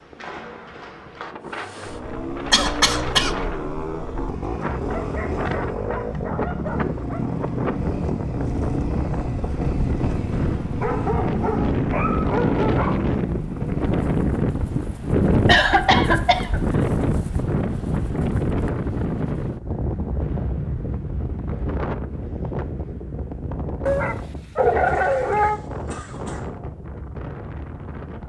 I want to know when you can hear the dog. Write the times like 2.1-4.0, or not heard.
4.9-7.3, 10.3-13.0, 23.9-25.6.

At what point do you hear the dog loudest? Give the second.
25 s.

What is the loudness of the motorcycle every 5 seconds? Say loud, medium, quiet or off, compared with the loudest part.
loud, loud, loud, off, off, off.